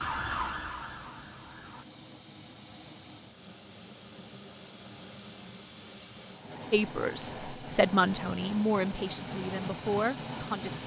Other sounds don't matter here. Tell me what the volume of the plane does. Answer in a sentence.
The loudness of the plane goes up.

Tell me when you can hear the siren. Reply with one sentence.
You can hear the siren from 0.0 to 1.9 s.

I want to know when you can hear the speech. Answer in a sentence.
You can hear the speech from 6.7 to 10.8 s.